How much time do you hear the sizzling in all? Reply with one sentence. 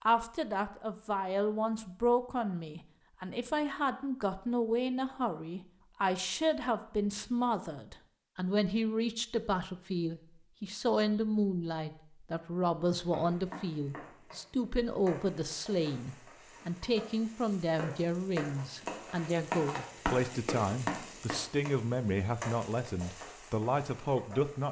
The sizzling can be heard for 12 seconds in total.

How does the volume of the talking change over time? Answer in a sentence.
The volume of the talking stays about the same.